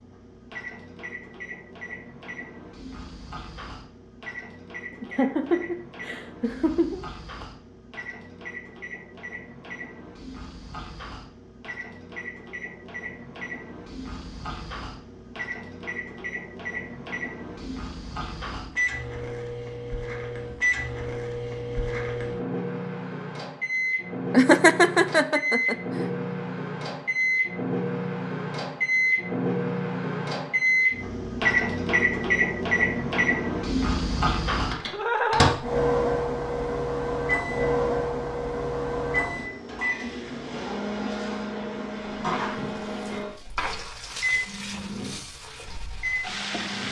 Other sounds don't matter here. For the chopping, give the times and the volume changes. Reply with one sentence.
The chopping can't be heard in this clip.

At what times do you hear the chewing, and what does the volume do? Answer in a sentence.
You can't hear the chewing here.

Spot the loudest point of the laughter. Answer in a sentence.
The volume of the laughter peaks at 25 seconds.